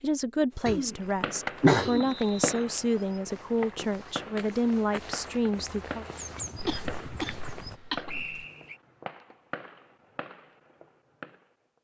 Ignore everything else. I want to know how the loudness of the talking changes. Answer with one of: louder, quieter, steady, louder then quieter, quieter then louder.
steady.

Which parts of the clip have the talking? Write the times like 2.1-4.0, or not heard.
0.0-6.0.